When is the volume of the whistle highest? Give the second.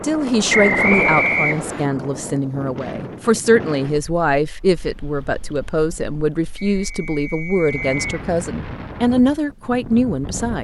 1 s.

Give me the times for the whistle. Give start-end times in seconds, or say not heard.
0.5-1.9, 6.7-8.2.